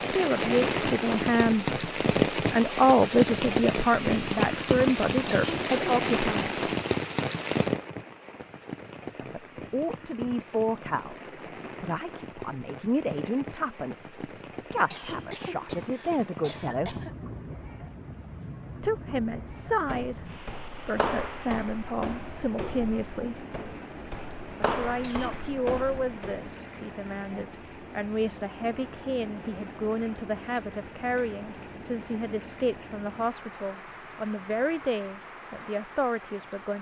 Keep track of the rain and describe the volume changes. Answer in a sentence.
The loudness of the rain goes down.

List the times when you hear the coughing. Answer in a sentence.
The coughing can be heard from 5.2 to 6.0 s, from 14.8 to 17.1 s and from 25.0 to 25.5 s.